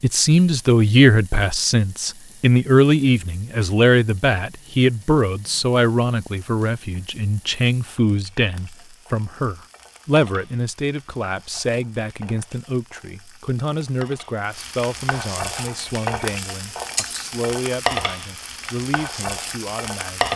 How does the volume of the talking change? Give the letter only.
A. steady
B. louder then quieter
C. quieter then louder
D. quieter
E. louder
D.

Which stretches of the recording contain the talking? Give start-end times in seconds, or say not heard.
0.0-20.3.